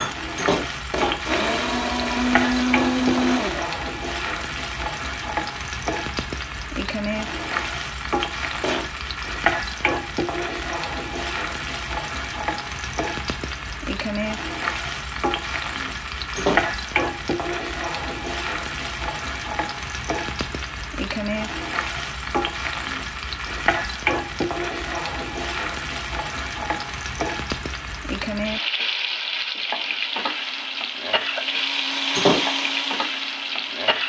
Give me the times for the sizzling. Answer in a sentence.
You can hear the sizzling from 0.0 to 34.0 s.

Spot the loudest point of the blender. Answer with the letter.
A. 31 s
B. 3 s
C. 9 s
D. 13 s
B.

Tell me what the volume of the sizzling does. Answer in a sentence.
The loudness of the sizzling stays about the same.